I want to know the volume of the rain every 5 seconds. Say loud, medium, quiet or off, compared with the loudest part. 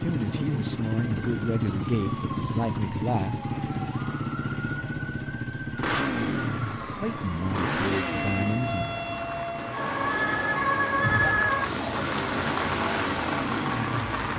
off, medium, loud.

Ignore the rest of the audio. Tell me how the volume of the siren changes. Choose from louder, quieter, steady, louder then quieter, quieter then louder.
louder.